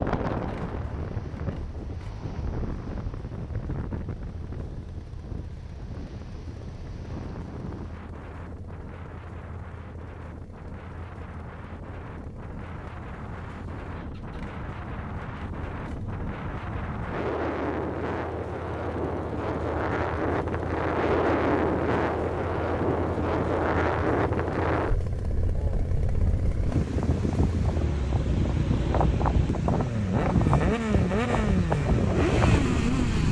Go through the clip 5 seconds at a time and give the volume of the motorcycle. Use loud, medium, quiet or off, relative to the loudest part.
quiet, quiet, quiet, quiet, quiet, medium, loud.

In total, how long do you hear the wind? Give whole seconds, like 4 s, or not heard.
33 s.